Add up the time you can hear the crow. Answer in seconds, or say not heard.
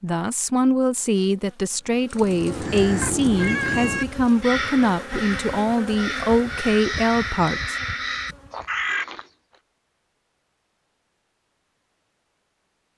7 s.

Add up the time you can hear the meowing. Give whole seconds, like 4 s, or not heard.
2 s.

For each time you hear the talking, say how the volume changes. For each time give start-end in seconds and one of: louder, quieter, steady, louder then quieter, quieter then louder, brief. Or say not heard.
0.0-7.8 steady.